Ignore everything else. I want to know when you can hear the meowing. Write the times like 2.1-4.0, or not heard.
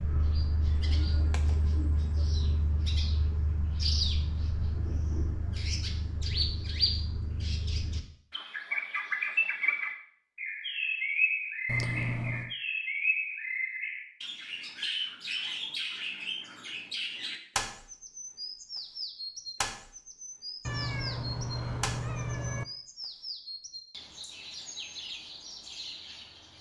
1.0-1.8, 11.7-12.6, 20.6-22.6.